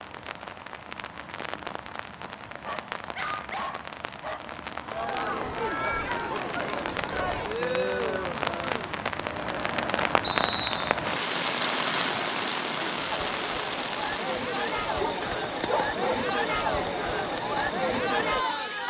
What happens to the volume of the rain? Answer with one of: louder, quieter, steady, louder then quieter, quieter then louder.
louder then quieter.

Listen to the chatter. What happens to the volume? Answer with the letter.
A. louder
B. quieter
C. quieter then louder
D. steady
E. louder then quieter
C.